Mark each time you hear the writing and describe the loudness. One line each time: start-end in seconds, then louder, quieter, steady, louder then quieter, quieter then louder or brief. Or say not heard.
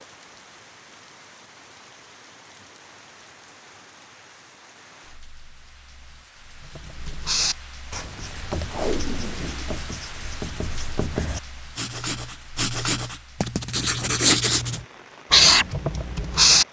6.8-16.6 quieter then louder.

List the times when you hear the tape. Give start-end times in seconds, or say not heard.
8.7-9.8.